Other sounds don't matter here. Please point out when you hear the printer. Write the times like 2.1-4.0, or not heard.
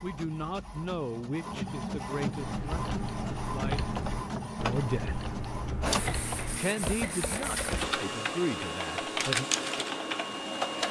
0.0-10.8.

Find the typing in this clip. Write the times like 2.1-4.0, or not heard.
2.4-10.3.